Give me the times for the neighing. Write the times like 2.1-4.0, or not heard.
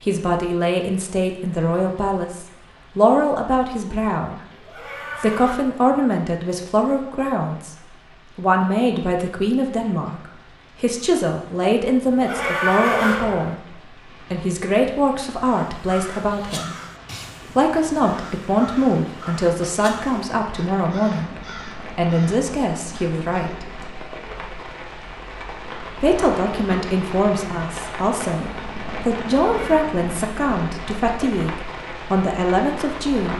4.5-5.6, 12.1-13.6, 29.4-29.9.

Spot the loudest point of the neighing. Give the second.
13 s.